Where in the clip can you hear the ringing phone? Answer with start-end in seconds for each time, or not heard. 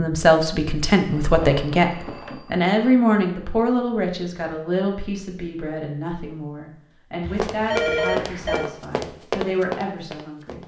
1.1-2.7, 7.2-8.7.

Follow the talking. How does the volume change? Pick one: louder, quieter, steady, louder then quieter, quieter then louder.
quieter.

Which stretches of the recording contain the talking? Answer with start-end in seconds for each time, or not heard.
0.0-10.6.